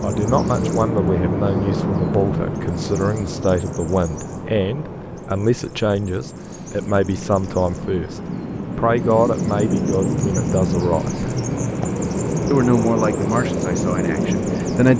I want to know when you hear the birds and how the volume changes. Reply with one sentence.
You can hear the birds from 0.0 to 14.9 s, getting quieter then louder.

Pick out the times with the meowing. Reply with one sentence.
The meowing can't be heard in this clip.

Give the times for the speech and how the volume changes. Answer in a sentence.
You can hear the speech from 0.0 to 11.2 s, at a steady volume; and briefly from 12.5 to 14.9 s.